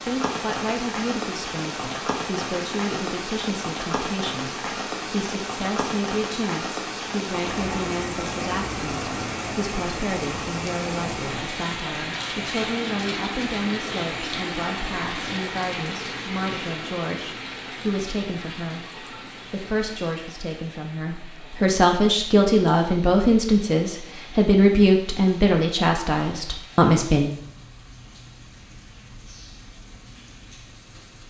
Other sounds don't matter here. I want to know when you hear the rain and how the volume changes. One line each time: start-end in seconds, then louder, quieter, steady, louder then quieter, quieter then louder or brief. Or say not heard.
0.0-31.2 quieter.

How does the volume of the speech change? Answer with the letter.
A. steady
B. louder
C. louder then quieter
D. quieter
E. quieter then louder
B.